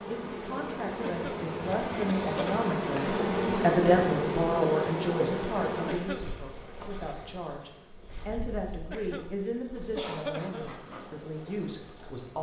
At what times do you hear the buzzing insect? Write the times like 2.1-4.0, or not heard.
0.0-12.3.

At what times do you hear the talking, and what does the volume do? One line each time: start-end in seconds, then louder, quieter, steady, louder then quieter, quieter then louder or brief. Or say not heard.
0.1-12.3 louder then quieter.